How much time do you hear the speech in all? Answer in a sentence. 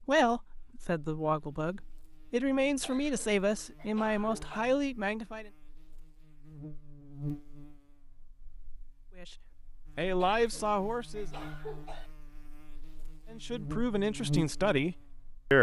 You can hear the speech for 9 seconds altogether.